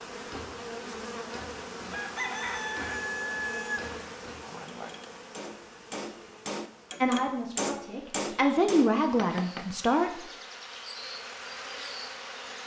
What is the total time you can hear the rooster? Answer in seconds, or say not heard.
2 s.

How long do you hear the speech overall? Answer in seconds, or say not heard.
3 s.